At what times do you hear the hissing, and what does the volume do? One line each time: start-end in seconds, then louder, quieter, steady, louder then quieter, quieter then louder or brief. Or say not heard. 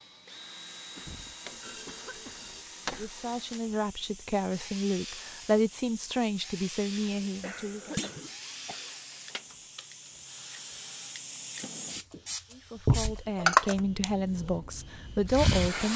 0.0-15.9 louder.